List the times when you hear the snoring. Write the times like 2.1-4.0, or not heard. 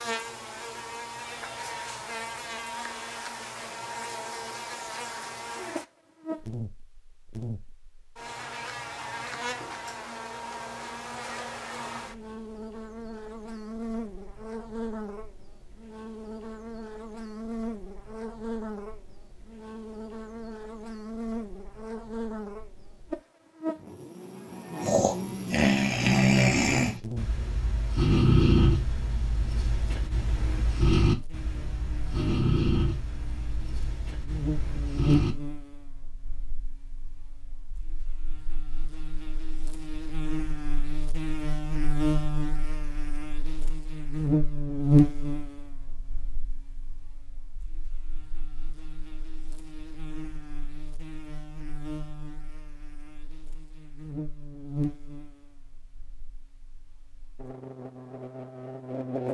24.8-35.4.